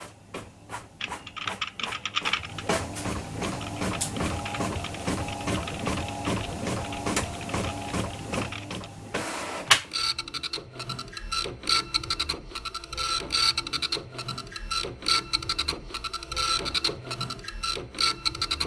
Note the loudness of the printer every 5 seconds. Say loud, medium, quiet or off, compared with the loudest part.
medium, loud, loud, loud.